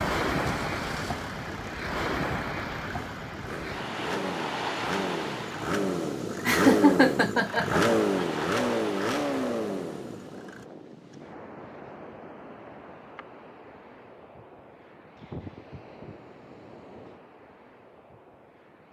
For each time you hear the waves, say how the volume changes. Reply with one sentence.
The waves can be heard from 0.0 to 18.8 s, getting quieter.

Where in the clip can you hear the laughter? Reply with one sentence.
You can hear the laughter from 6.5 to 8.2 s.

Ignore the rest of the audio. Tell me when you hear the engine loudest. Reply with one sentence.
The loudest moment of the engine is at 8 seconds.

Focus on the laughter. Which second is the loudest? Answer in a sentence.
The loudest moment of the laughter is at 7 seconds.